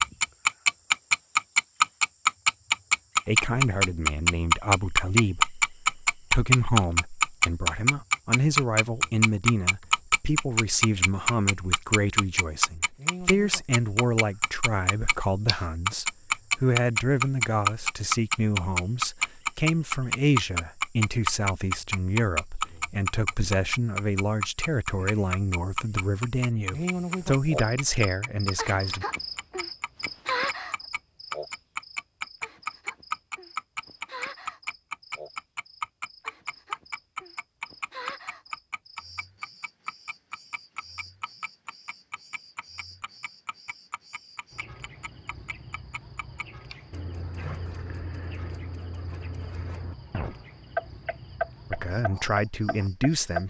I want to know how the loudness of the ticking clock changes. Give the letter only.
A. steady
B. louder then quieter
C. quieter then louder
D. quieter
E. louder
D.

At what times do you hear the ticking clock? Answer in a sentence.
The ticking clock can be heard from 0.0 to 53.4 s.